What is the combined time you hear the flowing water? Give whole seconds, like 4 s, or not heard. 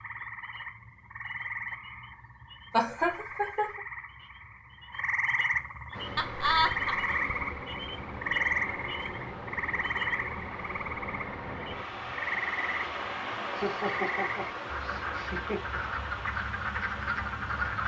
12 s.